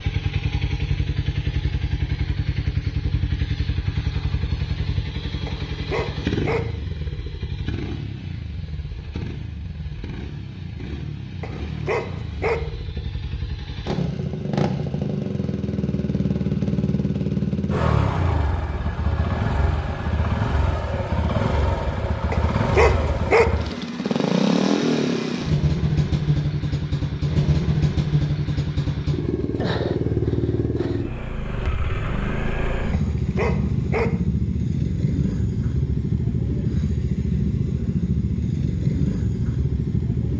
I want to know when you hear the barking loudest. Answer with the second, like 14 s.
23 s.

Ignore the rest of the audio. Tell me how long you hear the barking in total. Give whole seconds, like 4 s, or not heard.
5 s.